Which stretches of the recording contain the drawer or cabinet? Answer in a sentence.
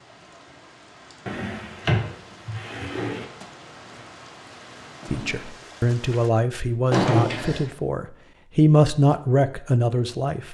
The drawer or cabinet can be heard from 1.2 to 3.2 s and from 6.9 to 7.7 s.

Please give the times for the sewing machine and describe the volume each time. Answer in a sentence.
The sewing machine can't be heard in this clip.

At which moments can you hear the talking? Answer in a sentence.
The talking can be heard from 5.0 to 10.5 s.